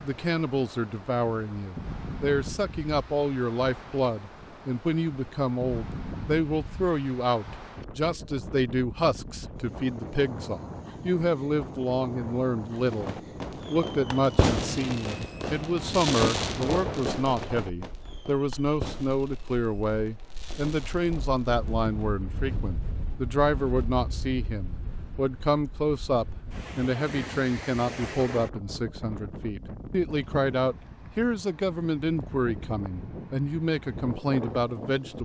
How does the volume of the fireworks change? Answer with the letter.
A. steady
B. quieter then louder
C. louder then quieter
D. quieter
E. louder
D.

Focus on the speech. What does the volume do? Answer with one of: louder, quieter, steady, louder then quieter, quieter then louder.
steady.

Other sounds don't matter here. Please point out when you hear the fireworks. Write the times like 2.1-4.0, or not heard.
12.8-22.1.